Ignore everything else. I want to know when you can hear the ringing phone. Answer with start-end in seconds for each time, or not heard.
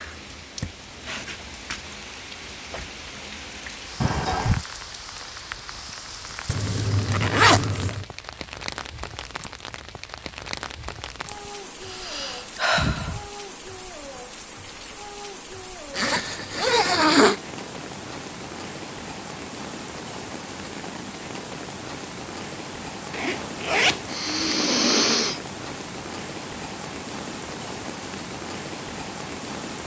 not heard.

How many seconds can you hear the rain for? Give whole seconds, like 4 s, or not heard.
30 s.